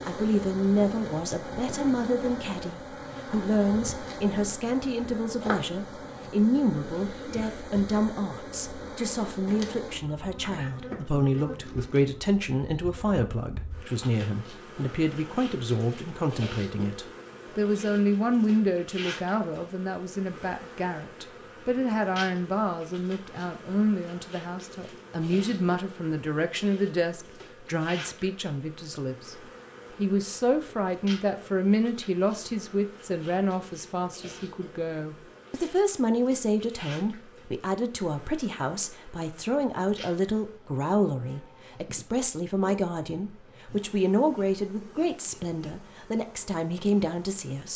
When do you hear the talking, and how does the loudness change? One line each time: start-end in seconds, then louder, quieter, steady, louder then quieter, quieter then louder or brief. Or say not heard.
0.1-29.4 steady
29.9-47.7 steady.